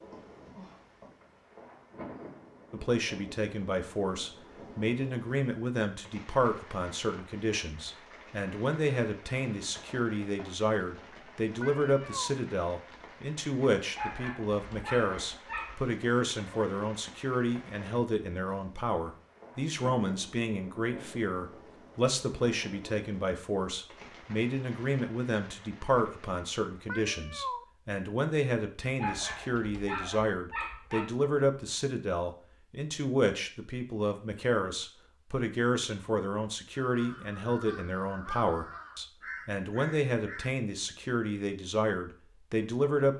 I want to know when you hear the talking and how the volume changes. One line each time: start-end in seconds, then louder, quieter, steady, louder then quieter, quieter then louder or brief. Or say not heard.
2.7-43.1 steady.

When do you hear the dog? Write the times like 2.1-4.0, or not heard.
13.9-15.8, 28.9-31.1.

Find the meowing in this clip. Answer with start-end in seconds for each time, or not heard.
11.6-12.3, 26.9-27.6.